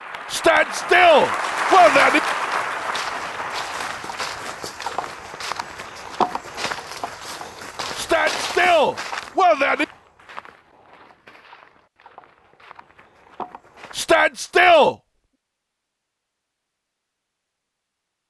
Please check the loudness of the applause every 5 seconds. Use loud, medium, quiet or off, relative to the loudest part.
loud, quiet, off, off.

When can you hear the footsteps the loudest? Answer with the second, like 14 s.
6 s.